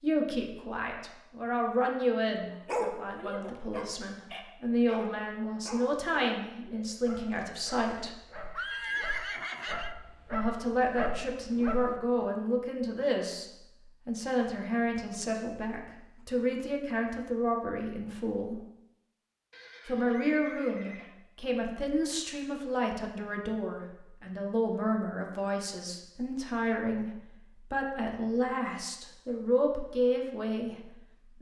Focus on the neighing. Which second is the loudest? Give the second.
9 s.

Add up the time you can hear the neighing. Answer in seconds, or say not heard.
4 s.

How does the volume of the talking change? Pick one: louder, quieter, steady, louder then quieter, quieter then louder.
steady.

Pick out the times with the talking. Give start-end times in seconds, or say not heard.
0.0-8.2, 10.3-18.6, 19.9-31.3.